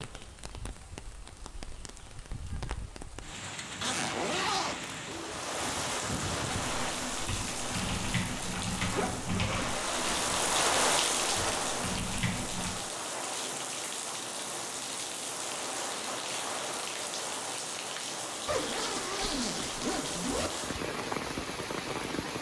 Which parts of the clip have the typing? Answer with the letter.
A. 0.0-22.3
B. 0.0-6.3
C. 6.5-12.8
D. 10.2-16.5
C.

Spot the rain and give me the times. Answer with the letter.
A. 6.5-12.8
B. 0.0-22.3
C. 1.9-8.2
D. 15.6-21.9
B.